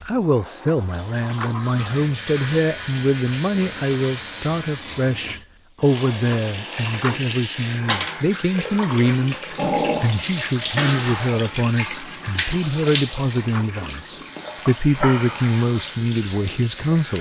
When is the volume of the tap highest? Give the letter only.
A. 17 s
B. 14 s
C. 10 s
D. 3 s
C.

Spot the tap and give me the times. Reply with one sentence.
The tap can be heard from 0.0 to 17.1 s.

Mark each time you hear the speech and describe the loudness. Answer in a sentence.
You can hear the speech from 0.1 to 17.1 s, at a steady volume.